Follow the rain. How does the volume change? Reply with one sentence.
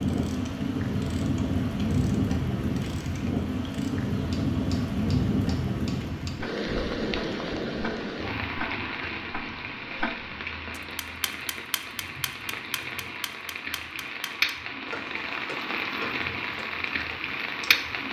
The loudness of the rain goes down, then up.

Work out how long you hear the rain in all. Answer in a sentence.
You can hear the rain for 18 seconds altogether.